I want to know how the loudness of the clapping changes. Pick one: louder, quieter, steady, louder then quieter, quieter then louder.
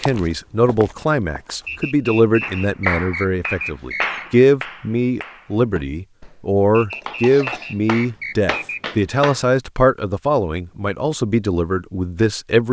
quieter then louder.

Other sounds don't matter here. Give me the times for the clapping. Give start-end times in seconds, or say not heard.
2.4-9.4.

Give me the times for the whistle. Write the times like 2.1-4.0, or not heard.
1.6-4.2, 6.7-8.8.